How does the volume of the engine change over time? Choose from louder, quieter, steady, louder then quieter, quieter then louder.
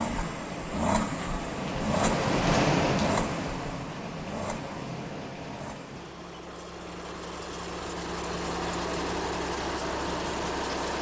quieter then louder.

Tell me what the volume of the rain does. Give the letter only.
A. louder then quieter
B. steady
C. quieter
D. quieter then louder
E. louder
A.